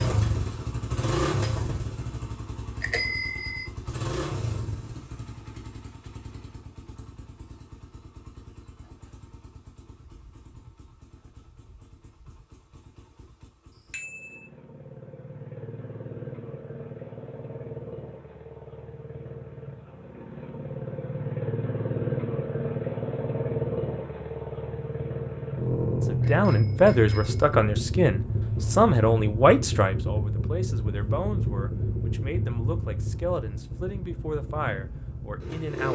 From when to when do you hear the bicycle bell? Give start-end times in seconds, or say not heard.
2.8-3.6, 13.9-14.4, 26.2-27.6.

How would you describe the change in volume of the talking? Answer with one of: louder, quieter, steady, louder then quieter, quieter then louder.
quieter.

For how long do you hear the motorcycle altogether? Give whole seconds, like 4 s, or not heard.
36 s.